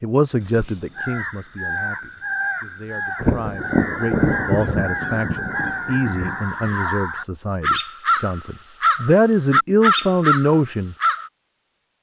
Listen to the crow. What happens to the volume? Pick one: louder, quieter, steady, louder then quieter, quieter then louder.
louder.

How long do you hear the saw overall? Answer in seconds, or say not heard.
not heard.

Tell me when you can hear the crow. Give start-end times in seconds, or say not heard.
0.4-11.3.